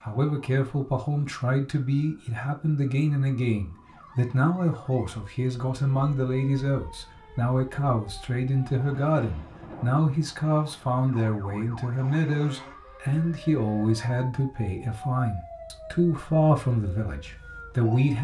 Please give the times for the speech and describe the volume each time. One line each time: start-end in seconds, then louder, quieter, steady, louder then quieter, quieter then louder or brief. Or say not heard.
0.0-18.1 steady.